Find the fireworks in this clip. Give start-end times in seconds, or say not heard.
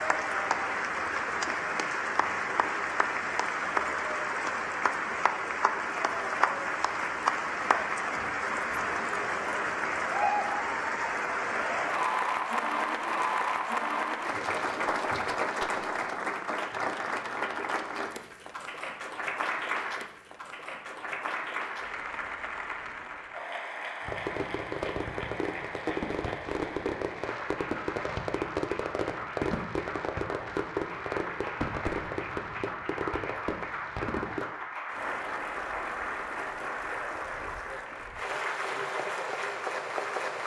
24.1-34.5.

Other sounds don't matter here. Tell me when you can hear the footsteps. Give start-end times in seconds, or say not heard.
not heard.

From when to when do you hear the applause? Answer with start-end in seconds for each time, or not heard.
0.0-40.4.